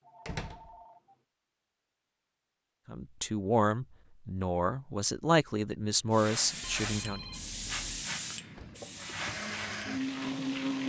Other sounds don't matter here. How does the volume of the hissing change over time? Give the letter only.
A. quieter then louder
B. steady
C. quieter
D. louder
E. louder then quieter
C.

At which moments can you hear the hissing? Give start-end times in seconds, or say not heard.
6.1-10.8.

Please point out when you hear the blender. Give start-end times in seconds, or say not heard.
8.5-10.8.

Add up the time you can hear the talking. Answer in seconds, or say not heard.
4 s.